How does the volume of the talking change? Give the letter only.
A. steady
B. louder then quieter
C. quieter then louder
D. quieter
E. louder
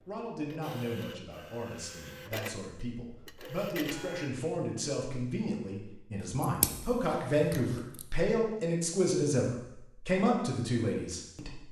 E.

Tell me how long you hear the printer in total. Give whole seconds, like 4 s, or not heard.
4 s.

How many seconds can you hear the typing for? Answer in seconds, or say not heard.
not heard.